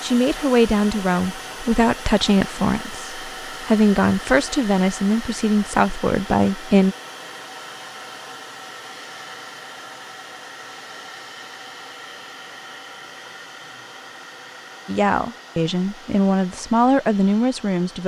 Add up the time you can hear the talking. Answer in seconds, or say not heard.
10 s.